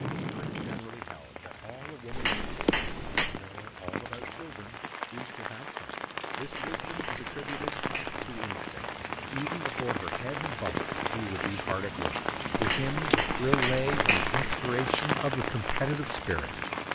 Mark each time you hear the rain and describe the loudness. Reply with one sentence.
The rain can be heard from 0.0 to 16.9 s, getting louder.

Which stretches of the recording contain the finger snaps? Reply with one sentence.
You can hear the finger snaps from 2.1 to 3.4 s, from 6.4 to 8.2 s and from 12.6 to 14.5 s.